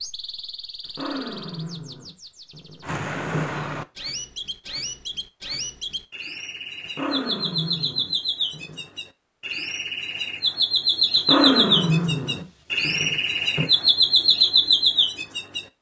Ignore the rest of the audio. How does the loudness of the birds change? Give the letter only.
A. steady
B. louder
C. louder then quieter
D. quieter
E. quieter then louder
B.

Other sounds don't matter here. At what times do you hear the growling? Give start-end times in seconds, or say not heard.
0.9-3.5, 6.8-8.8, 11.2-13.7.